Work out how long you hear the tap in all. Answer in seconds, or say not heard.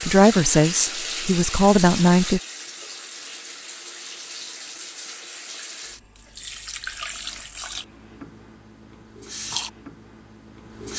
11 s.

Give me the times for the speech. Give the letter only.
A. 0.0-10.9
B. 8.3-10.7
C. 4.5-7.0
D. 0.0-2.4
D.